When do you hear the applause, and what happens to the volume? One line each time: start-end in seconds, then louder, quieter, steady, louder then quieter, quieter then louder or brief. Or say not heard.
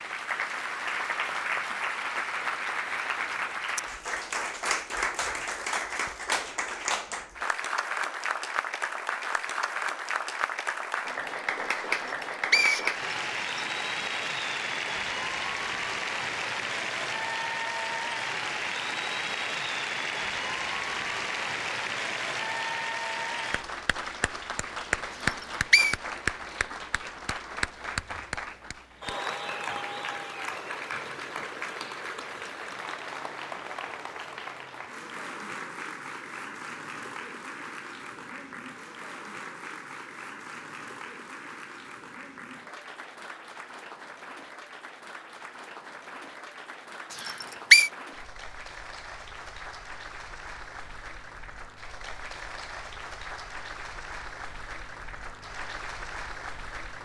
0.0-57.0 quieter.